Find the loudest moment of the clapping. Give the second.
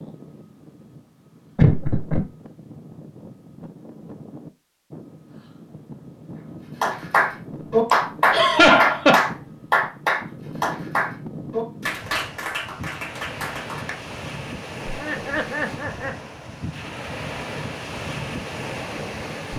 8 s.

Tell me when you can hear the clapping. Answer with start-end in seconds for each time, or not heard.
6.8-13.9.